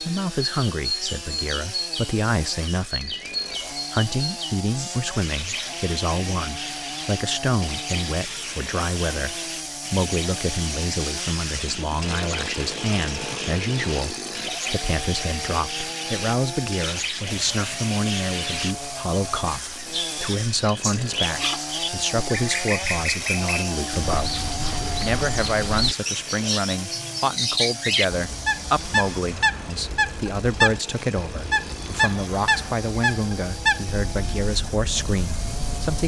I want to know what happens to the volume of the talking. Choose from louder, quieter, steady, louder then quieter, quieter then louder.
steady.